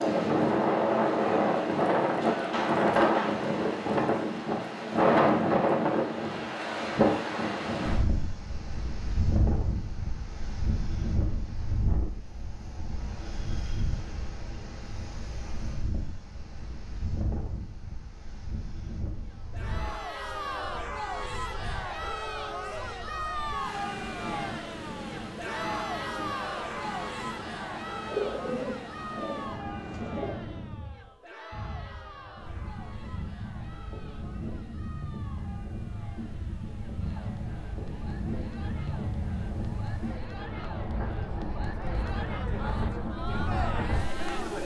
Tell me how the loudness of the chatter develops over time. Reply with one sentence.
The loudness of the chatter goes down, then up.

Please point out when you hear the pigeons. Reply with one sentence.
The pigeons can be heard from 28.1 to 30.4 s.